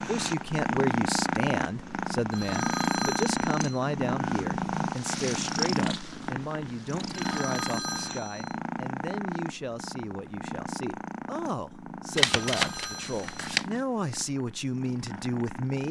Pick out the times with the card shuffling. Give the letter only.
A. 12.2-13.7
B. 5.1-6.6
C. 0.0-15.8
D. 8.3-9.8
A.